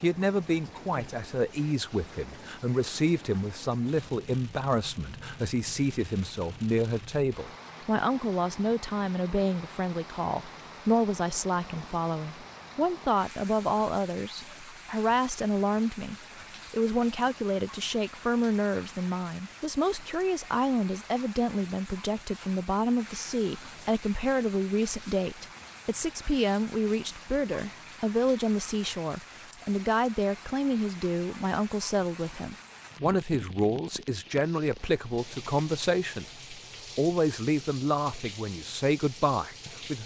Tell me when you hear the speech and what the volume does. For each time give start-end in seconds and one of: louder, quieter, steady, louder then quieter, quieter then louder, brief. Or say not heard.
0.0-40.0 steady.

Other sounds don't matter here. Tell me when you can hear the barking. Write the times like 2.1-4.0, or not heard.
not heard.